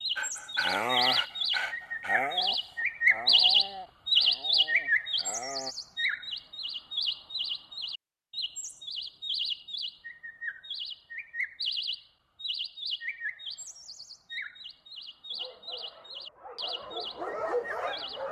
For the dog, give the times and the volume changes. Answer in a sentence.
The dog can be heard from 0.1 to 5.8 s, getting quieter; and briefly from 15.3 to 18.2 s.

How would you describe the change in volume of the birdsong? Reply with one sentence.
The volume of the birdsong goes down.